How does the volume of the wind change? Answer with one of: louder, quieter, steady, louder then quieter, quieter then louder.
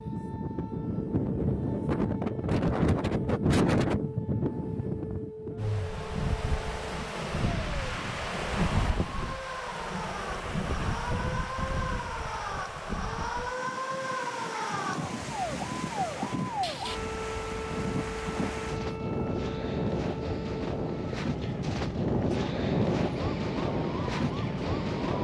quieter then louder.